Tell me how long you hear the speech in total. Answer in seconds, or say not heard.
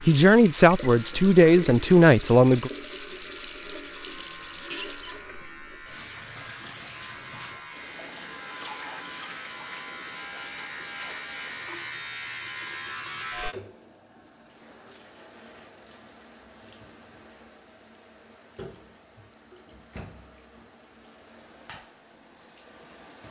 3 s.